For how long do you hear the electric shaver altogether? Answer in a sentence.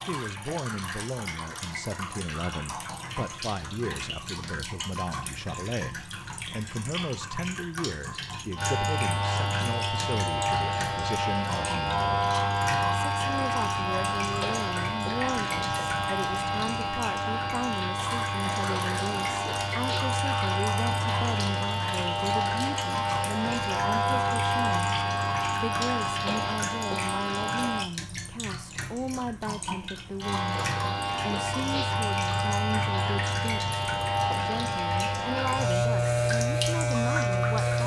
You can hear the electric shaver for 27 seconds altogether.